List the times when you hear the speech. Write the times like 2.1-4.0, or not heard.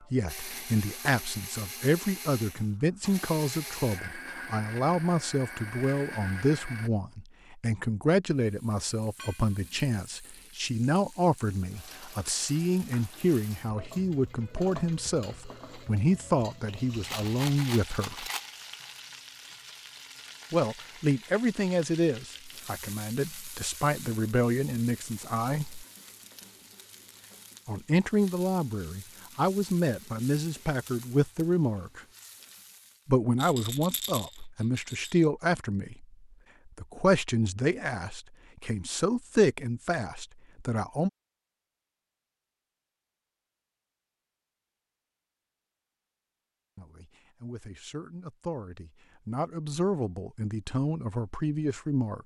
0.1-18.3, 20.5-25.9, 27.6-32.0, 33.0-41.1, 46.8-52.2.